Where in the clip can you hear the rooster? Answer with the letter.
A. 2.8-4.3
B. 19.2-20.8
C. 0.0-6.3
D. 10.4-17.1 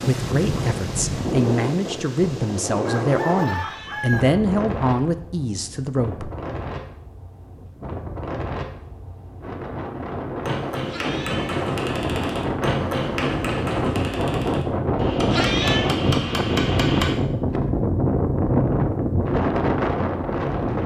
A.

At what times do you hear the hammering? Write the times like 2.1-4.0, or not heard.
10.4-17.1.